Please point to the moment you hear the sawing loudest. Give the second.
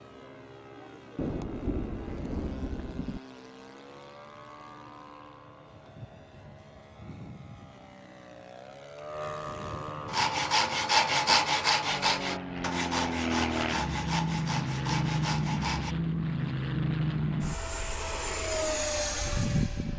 11 s.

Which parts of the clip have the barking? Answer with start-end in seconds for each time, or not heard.
not heard.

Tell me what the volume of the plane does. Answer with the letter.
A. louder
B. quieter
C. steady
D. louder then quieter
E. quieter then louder
A.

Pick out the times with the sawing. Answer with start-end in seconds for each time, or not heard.
10.1-15.9.